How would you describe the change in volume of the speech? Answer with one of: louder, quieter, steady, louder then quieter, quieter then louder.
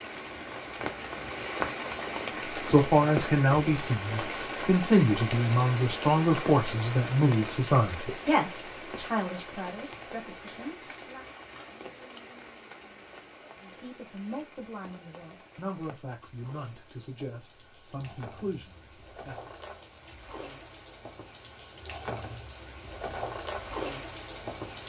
quieter.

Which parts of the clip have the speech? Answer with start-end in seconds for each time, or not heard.
2.6-11.2, 13.6-19.5.